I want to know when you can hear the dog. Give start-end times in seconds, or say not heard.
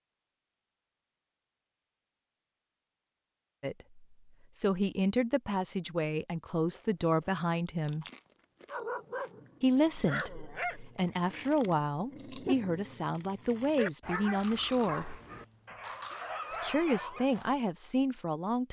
8.7-17.3.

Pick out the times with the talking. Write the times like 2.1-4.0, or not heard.
3.6-8.1, 9.6-15.2, 16.5-18.6.